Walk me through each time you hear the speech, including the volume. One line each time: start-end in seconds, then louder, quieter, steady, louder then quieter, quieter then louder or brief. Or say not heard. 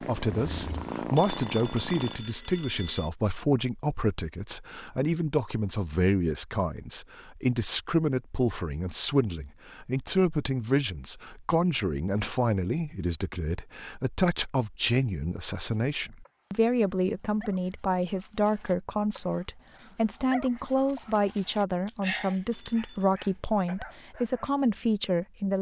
0.0-25.5 steady.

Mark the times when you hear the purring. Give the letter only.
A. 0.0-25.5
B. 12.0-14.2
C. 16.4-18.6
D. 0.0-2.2
D.